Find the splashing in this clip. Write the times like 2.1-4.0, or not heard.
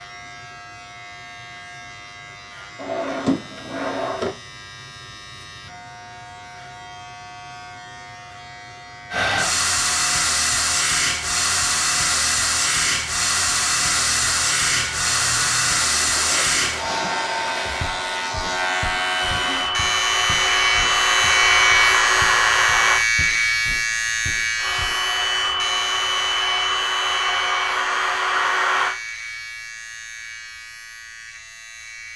not heard.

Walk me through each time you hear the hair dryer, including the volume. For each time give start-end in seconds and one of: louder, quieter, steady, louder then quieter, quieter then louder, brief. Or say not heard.
9.1-23.1 quieter then louder
24.6-28.9 steady.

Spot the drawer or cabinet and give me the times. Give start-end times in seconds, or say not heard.
2.8-4.3.